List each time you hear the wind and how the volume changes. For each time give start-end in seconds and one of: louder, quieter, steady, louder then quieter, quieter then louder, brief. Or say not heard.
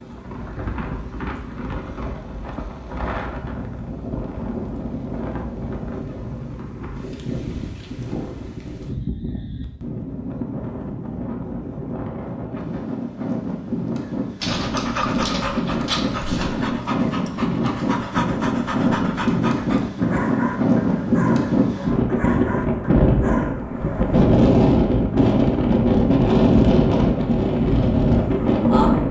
0.0-29.0 louder.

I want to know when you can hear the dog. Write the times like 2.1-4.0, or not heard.
14.4-24.1.